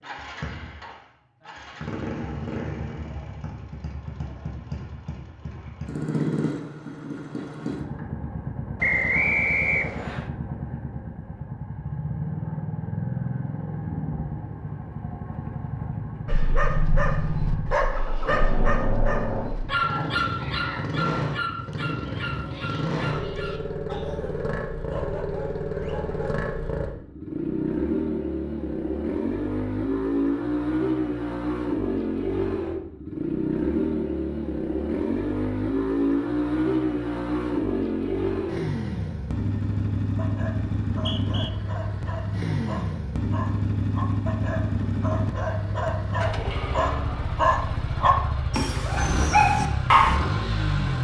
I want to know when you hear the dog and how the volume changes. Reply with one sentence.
You can hear the dog from 16.2 to 26.4 s, getting quieter; and from 40.1 to 50.2 s, getting louder.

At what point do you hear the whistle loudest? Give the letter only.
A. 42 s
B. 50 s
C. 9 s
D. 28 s
C.